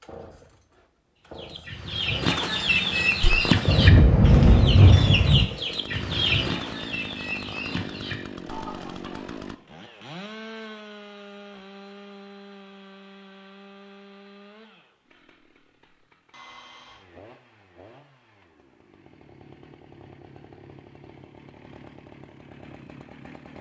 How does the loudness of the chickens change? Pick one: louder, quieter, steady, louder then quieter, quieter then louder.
quieter.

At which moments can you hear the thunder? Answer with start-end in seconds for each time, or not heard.
3.6-5.5.